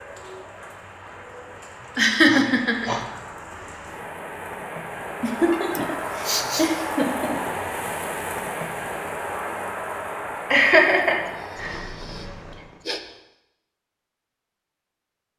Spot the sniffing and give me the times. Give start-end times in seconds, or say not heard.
1.8-3.2, 5.7-6.7, 11.2-13.0.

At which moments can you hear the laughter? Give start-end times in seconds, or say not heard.
1.9-2.9, 5.2-7.5, 10.5-11.7.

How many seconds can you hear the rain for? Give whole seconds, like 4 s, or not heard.
13 s.